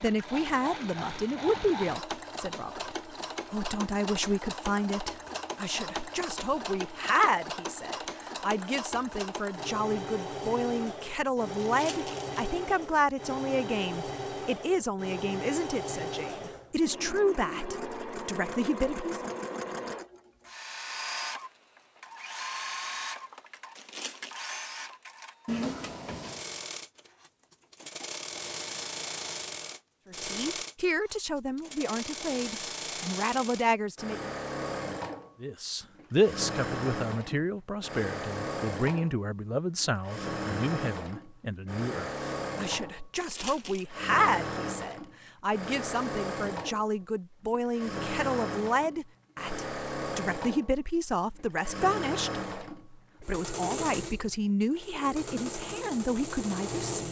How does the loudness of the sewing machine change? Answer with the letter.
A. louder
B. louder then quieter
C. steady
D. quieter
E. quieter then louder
C.